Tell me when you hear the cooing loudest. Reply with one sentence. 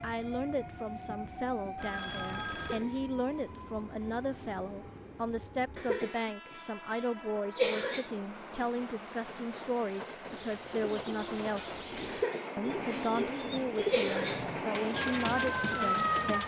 The volume of the cooing peaks at 14 seconds.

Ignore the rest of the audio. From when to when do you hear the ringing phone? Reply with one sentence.
The ringing phone can be heard from 1.8 to 2.9 s.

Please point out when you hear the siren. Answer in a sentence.
The siren can be heard from 14.9 to 16.4 s.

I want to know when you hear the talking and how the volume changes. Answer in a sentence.
You can hear the talking from 0.0 to 16.4 s, at a steady volume.